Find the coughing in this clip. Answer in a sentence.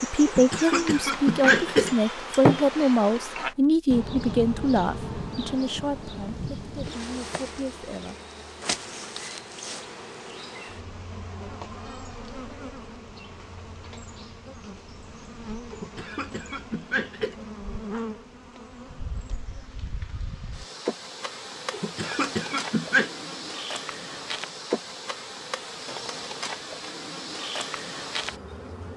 The coughing can be heard from 0.2 to 2.6 s, from 15.7 to 17.4 s and from 21.7 to 23.1 s.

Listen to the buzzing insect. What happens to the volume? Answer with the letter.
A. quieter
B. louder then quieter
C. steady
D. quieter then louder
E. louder
D.